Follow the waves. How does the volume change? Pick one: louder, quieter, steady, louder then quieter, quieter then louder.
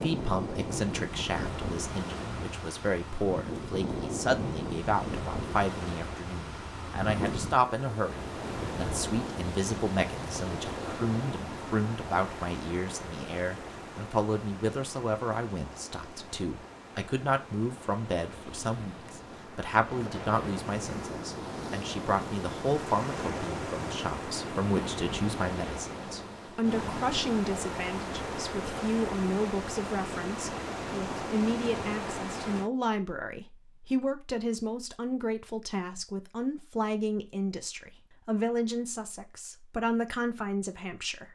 quieter then louder.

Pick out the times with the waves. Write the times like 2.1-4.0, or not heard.
0.0-32.7.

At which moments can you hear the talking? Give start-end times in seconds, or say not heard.
0.0-41.3.